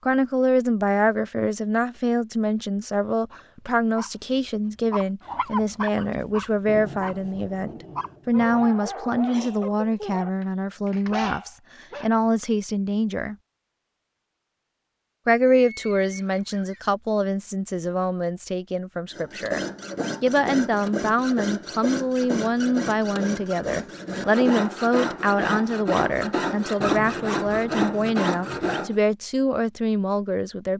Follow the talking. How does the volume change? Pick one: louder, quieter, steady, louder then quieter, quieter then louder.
steady.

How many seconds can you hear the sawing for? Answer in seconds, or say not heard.
10 s.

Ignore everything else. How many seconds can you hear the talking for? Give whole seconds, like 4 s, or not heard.
29 s.